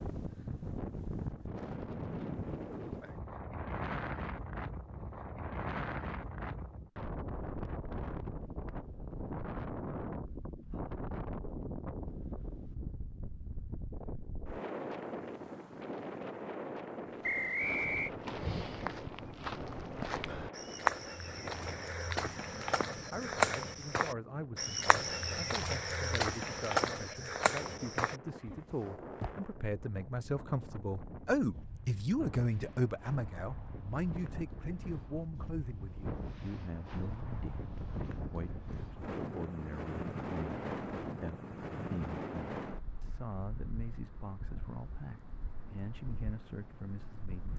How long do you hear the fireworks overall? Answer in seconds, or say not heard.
not heard.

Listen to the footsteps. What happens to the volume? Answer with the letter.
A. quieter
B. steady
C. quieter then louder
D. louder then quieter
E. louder
E.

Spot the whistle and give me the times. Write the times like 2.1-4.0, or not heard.
17.2-18.1.